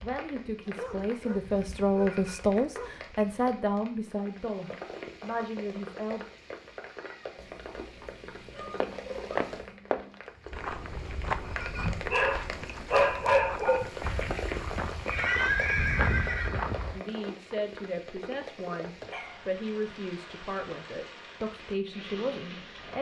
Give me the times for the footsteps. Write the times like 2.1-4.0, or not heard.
8.8-17.0.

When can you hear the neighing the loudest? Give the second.
15 s.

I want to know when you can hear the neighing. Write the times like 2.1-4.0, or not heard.
14.0-16.6.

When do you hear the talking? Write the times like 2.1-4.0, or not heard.
0.0-6.2, 16.9-22.9.